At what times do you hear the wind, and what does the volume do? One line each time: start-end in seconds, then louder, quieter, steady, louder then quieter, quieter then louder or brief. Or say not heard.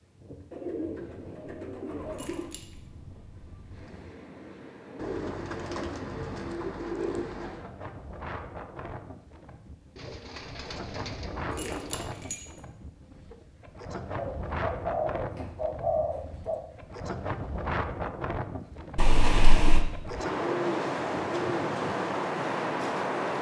0.0-23.3 louder.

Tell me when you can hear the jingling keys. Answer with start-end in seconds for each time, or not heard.
2.1-2.6, 11.6-12.4, 18.9-19.9.